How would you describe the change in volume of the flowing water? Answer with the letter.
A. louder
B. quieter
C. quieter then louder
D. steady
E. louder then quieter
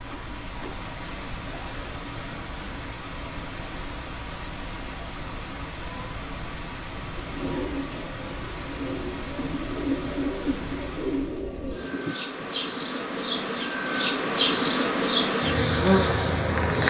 D.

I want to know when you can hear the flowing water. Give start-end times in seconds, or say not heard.
0.0-11.4.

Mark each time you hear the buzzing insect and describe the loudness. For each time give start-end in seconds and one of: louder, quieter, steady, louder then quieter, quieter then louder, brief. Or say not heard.
0.0-16.8 louder.